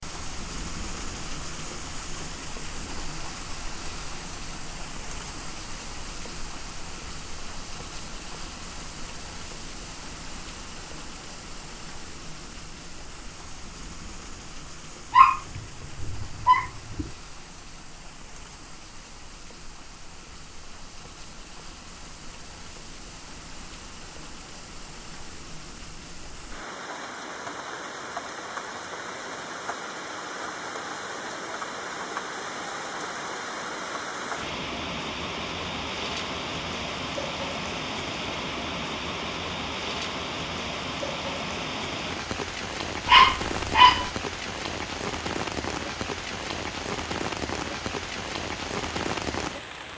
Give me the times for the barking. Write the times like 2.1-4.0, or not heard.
15.1-17.1, 43.0-44.1.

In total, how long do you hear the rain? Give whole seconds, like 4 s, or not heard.
50 s.